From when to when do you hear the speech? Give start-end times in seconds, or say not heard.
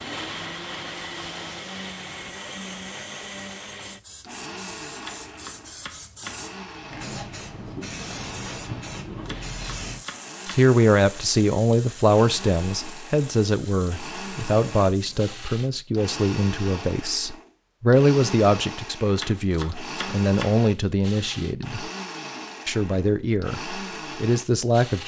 10.6-21.9, 22.6-25.0.